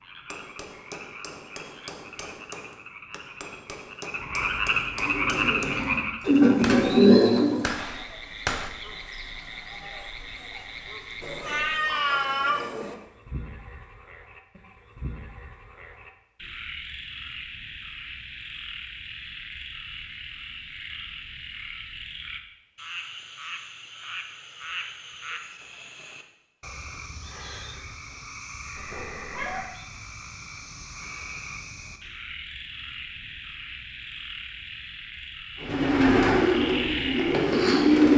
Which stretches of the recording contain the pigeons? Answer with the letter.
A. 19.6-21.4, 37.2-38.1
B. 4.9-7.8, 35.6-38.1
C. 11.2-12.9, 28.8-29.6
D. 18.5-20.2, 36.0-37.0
B.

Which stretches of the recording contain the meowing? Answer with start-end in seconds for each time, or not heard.
11.2-12.9, 28.8-29.6.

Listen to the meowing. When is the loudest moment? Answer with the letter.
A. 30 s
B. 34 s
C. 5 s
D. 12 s
D.